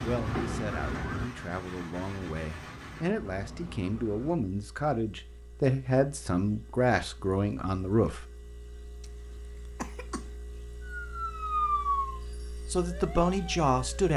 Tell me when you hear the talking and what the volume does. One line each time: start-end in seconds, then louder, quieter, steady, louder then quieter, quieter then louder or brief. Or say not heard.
0.0-8.2 louder
12.5-14.1 brief.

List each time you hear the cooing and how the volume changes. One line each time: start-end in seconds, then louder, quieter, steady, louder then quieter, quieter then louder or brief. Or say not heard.
not heard.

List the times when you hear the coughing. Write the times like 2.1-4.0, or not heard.
9.0-10.3.